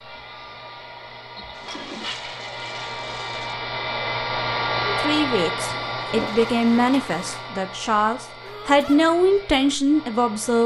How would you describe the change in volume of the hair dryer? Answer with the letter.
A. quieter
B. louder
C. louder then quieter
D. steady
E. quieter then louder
C.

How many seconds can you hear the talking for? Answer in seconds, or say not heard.
6 s.